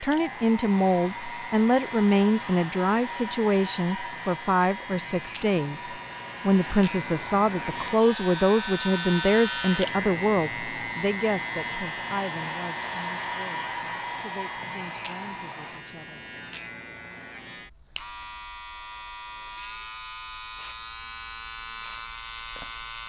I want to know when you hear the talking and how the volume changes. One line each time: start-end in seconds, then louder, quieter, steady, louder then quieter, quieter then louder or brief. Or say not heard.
0.0-16.2 quieter.